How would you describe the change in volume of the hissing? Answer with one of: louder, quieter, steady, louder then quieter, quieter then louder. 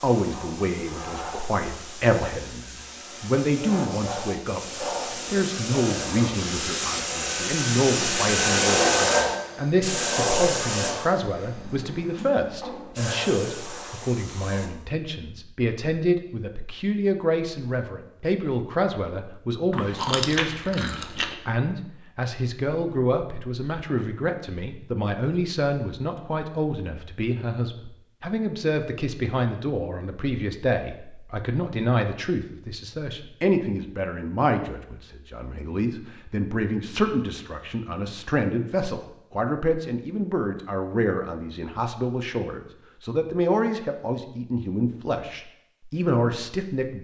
louder then quieter.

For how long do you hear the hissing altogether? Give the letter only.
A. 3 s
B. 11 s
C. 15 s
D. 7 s
C.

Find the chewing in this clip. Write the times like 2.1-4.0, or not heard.
19.7-21.4.